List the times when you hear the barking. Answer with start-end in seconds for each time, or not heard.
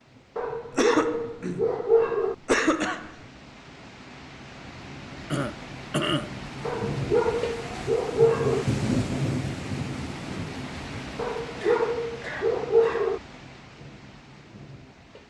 0.3-2.4, 6.7-8.7, 11.2-13.2.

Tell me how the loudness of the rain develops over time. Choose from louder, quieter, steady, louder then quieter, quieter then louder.
louder then quieter.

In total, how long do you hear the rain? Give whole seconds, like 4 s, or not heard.
15 s.